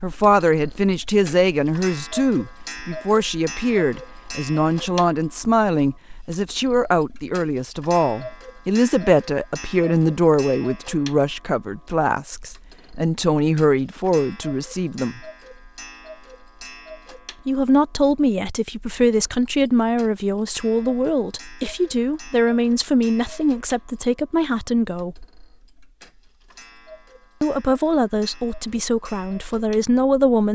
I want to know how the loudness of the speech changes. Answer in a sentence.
The volume of the speech stays about the same.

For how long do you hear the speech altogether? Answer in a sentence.
The speech can be heard for 26 seconds in total.